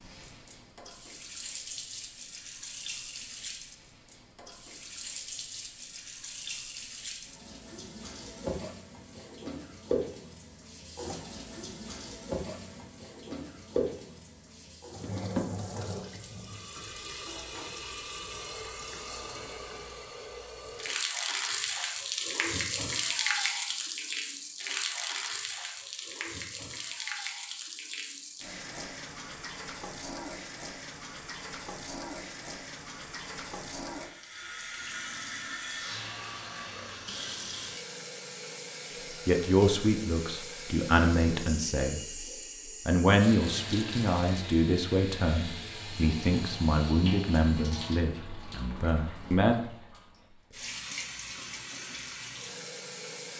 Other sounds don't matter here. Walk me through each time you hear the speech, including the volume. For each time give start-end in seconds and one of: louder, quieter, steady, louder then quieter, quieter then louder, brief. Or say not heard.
39.2-42.0 brief
42.9-49.5 quieter.